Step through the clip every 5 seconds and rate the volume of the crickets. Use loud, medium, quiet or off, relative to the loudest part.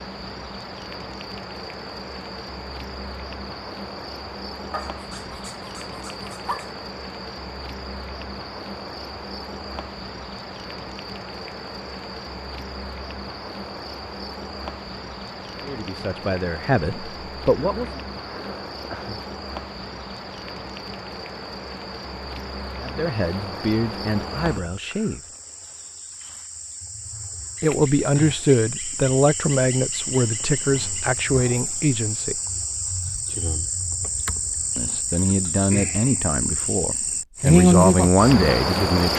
quiet, quiet, quiet, quiet, quiet, quiet, medium, loud.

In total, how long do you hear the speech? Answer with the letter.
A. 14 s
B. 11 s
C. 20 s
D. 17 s
A.